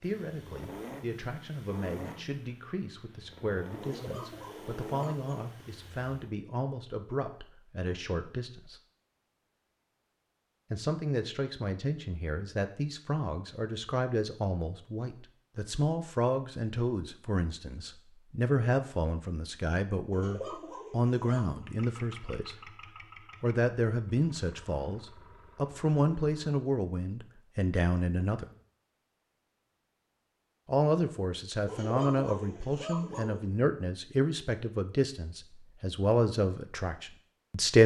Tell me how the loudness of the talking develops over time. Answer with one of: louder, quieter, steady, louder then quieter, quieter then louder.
louder.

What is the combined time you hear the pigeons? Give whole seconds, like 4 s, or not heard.
5 s.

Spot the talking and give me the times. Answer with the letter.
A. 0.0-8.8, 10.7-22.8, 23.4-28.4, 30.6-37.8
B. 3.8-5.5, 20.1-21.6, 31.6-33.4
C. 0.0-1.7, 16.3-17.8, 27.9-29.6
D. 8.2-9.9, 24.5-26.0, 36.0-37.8
A.